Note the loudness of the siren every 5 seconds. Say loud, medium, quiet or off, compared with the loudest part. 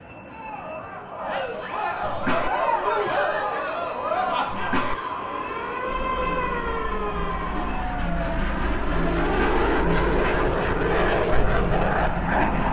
medium, loud, off.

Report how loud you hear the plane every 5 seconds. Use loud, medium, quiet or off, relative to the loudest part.
quiet, medium, loud.